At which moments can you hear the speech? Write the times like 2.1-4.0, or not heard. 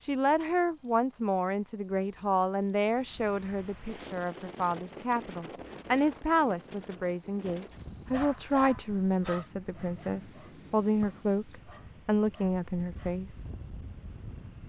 0.0-13.5.